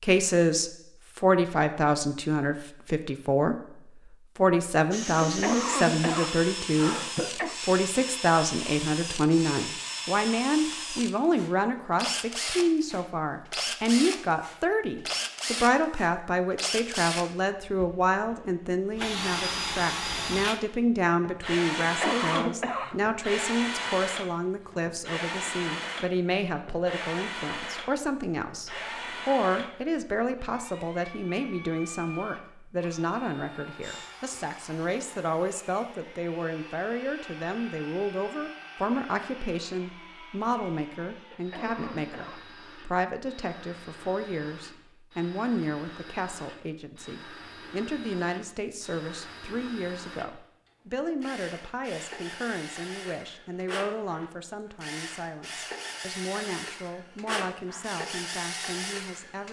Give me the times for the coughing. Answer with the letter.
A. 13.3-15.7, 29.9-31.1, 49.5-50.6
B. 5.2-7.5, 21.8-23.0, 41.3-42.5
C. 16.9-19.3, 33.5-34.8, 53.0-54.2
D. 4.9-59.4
B.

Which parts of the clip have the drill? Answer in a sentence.
The drill can be heard from 4.9 to 59.4 s.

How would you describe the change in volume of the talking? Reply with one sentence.
The loudness of the talking goes down.